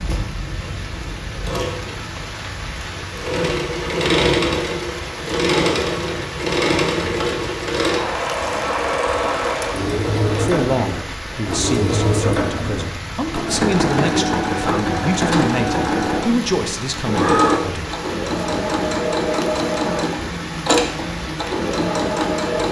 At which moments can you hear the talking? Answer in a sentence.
The talking can be heard from 10.3 to 17.9 s.